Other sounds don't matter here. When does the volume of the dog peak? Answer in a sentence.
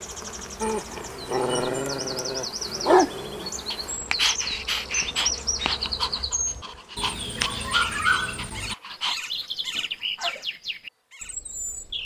The loudest moment of the dog is at 3 seconds.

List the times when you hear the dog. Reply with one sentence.
You can hear the dog from 0.6 to 10.4 s.